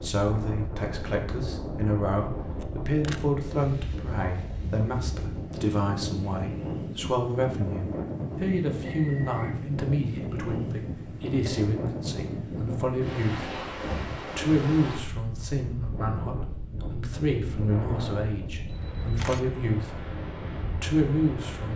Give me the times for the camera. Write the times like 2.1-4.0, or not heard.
2.6-3.2, 18.6-19.4.